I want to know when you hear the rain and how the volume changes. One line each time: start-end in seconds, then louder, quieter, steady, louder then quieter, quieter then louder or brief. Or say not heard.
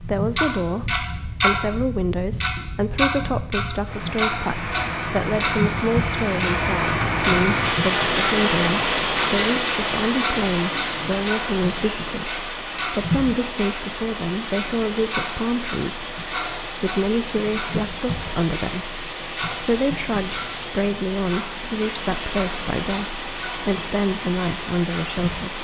0.0-25.5 louder then quieter.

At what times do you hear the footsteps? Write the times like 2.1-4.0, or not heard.
not heard.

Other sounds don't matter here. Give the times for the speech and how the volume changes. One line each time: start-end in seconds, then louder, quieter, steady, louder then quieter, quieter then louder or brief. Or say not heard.
0.0-25.5 steady.